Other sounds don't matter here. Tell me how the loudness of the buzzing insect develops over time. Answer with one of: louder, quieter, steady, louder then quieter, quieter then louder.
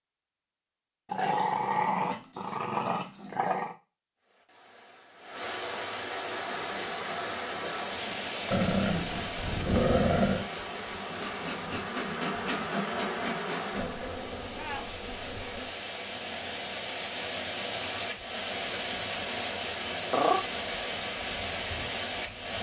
louder then quieter.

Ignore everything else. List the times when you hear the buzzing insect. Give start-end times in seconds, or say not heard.
6.2-22.5.